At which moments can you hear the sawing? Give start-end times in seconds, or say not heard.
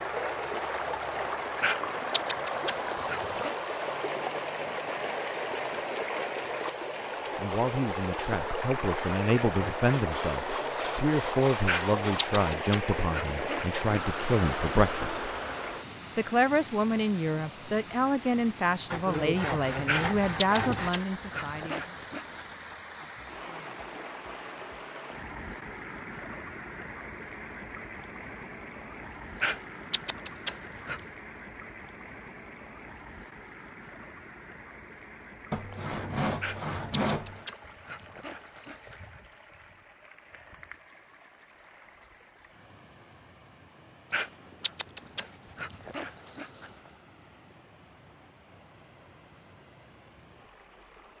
9.8-12.7, 18.9-20.9, 35.5-37.5.